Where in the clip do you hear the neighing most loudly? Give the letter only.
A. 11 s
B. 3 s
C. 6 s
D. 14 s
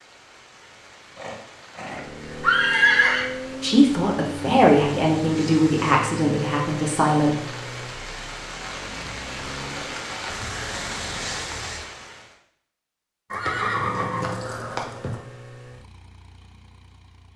B.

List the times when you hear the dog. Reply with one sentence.
You can't hear the dog here.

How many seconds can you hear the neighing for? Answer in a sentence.
You can hear the neighing for 4 seconds altogether.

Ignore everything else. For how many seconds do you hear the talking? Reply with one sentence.
You can hear the talking for 4 seconds altogether.